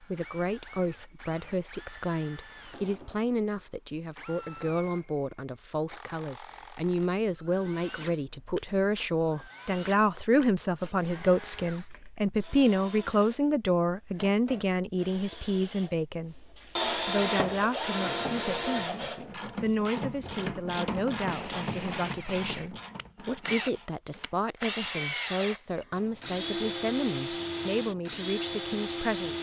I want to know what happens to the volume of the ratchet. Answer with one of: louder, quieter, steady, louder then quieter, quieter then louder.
louder then quieter.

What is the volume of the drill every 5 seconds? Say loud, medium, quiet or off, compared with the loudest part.
quiet, quiet, quiet, loud, loud, loud.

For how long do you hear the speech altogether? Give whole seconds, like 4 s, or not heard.
29 s.